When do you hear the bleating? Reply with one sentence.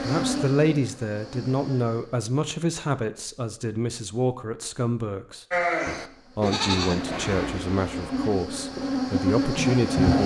The bleating can be heard from 5.5 to 8.4 s.